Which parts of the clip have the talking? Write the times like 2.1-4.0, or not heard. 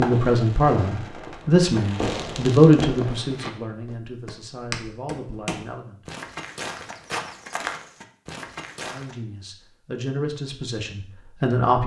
0.0-6.0, 8.8-11.8.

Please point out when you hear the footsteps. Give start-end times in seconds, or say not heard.
3.0-9.2.